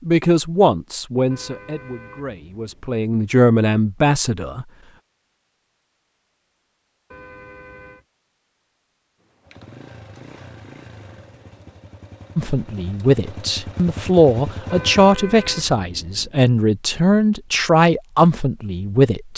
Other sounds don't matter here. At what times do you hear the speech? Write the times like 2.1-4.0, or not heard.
0.1-4.7, 12.3-19.3.